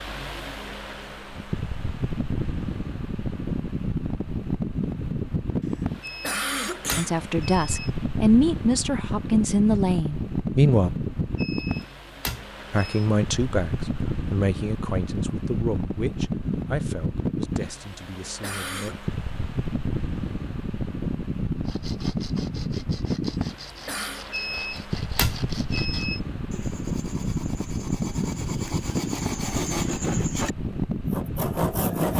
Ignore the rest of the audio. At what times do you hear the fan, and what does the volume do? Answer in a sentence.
The fan can be heard from 0.0 to 32.1 s, at a steady volume.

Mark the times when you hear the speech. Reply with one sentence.
The speech can be heard from 7.0 to 10.9 s and from 12.7 to 18.9 s.